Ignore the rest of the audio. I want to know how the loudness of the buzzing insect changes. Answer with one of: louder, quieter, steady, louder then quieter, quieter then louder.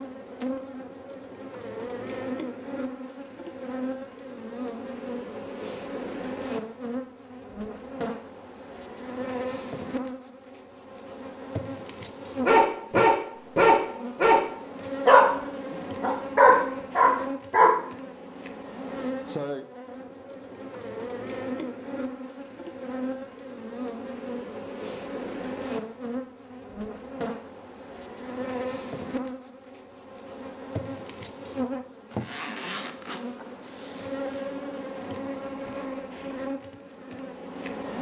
steady.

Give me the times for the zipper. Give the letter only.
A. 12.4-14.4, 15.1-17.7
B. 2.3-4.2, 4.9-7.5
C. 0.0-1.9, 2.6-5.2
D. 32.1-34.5
D.